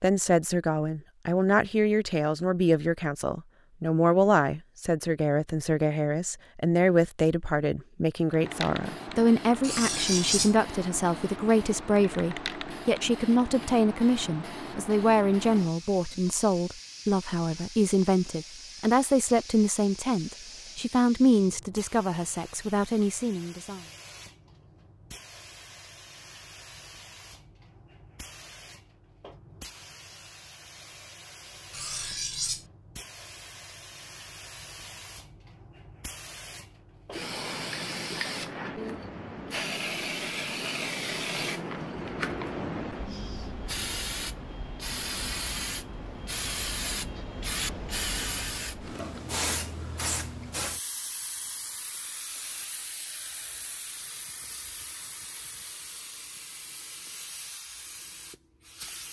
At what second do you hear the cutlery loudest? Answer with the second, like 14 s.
10 s.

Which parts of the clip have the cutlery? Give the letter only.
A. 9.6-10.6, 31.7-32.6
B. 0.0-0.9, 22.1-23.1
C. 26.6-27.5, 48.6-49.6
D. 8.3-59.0
A.